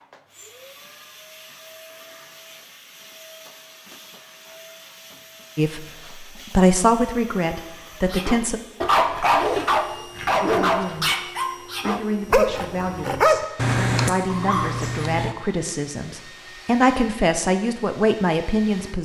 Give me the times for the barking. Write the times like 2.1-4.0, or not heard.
8.1-15.3.